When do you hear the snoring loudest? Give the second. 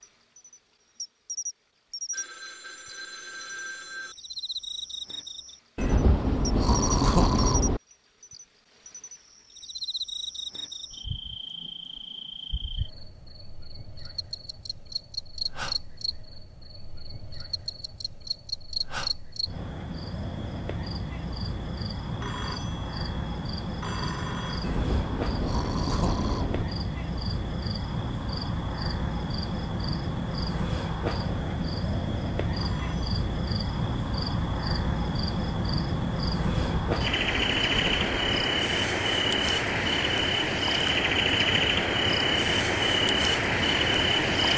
7 s.